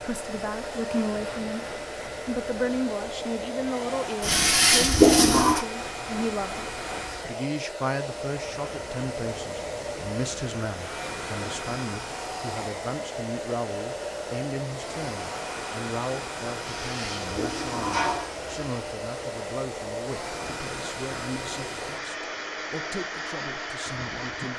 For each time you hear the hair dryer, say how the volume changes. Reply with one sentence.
You can hear the hair dryer from 0.0 to 24.5 s, at a steady volume.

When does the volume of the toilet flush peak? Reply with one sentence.
The volume of the toilet flush peaks at 5 seconds.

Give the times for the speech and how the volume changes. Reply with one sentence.
The speech can be heard briefly from 0.0 to 1.6 s; and from 2.2 to 24.5 s, getting quieter.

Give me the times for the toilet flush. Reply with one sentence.
You can hear the toilet flush from 4.2 to 5.7 s and from 16.6 to 18.6 s.